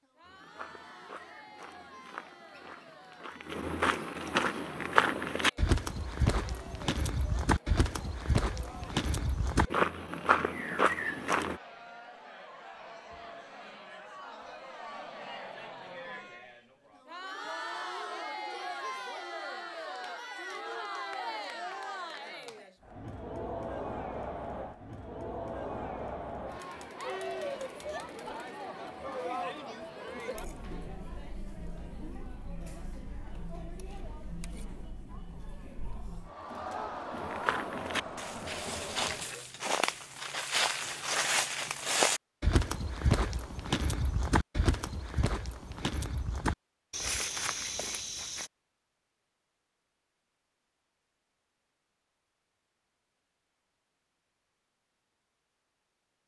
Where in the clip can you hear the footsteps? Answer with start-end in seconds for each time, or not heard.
0.2-11.6, 37.1-48.5.